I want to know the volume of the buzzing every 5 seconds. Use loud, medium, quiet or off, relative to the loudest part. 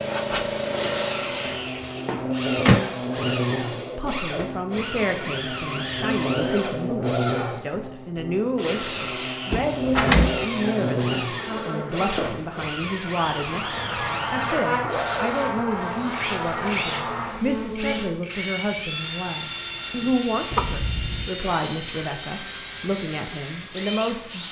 loud, loud, loud, loud, off.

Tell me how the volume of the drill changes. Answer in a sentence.
The volume of the drill stays about the same.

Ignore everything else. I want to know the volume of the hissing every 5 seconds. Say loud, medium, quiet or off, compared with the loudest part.
loud, off, off, quiet, quiet.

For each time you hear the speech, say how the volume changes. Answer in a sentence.
You can hear the speech from 4.0 to 24.4 s, at a steady volume.